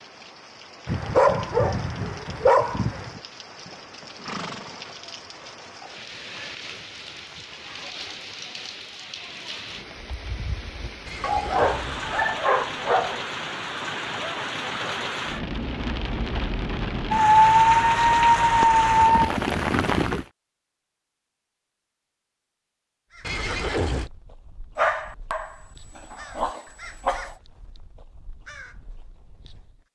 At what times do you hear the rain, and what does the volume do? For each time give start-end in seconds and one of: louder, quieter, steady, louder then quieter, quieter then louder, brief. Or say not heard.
0.0-20.2 louder.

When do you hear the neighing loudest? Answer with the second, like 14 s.
24 s.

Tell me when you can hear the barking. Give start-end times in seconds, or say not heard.
0.8-3.2, 11.2-13.2, 17.1-19.3, 24.8-25.5, 26.1-27.3.